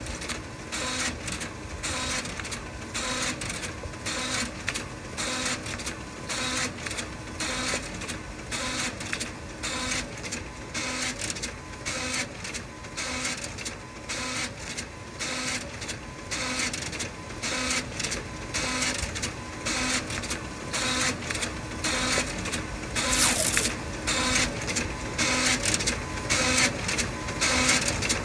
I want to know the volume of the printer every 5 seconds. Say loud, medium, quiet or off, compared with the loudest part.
medium, medium, medium, medium, loud, loud.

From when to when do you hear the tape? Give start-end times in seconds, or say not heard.
23.1-23.8.